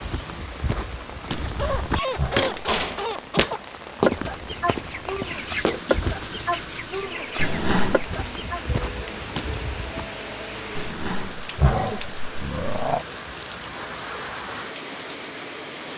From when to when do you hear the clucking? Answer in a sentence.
The clucking can be heard from 1.4 to 8.7 s.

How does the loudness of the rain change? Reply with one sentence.
The volume of the rain stays about the same.